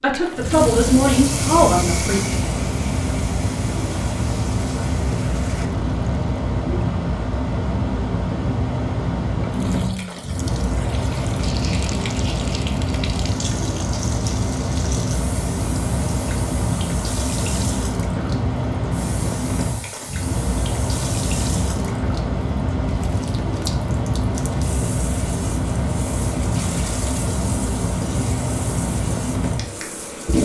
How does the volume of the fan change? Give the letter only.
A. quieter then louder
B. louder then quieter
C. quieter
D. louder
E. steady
E.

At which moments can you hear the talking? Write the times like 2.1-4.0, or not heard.
0.0-2.2.